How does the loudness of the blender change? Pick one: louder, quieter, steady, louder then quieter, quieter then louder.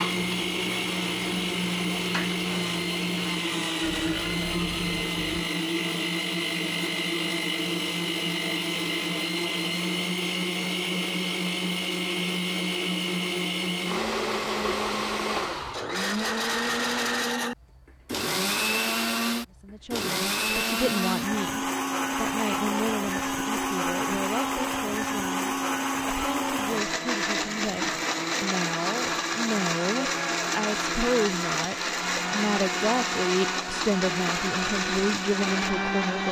steady.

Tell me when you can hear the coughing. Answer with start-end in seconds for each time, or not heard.
not heard.